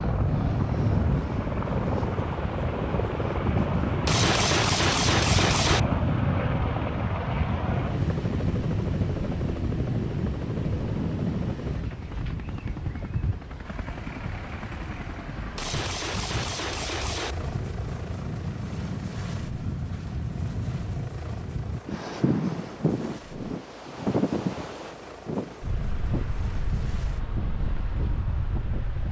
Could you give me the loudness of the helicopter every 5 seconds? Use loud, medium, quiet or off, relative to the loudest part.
loud, loud, medium, medium, quiet, quiet.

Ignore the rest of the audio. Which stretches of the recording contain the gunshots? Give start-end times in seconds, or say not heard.
4.0-5.8, 15.6-17.4.